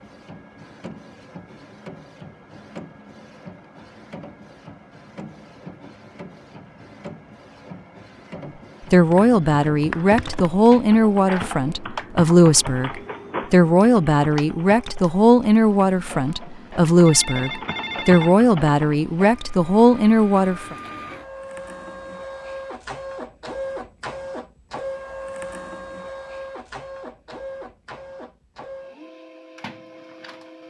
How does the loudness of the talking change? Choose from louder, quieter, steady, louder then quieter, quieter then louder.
steady.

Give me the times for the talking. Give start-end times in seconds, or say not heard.
8.9-20.8.